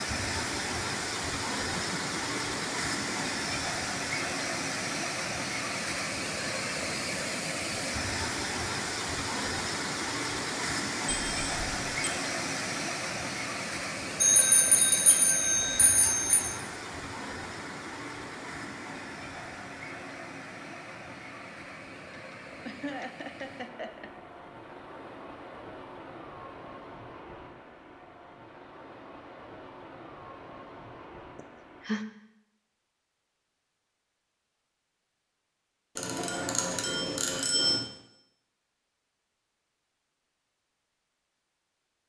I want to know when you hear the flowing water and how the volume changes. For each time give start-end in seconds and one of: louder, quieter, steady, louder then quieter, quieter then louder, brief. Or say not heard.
0.0-31.9 quieter.